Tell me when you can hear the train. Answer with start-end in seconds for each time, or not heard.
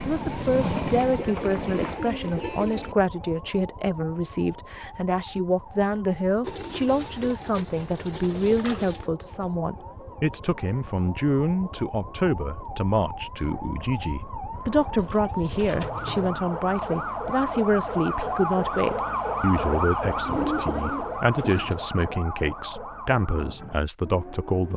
0.0-1.9.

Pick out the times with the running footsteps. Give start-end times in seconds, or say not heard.
not heard.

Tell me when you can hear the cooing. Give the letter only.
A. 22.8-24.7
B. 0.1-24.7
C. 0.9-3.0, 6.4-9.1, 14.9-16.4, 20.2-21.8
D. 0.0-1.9
C.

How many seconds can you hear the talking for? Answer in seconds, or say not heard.
25 s.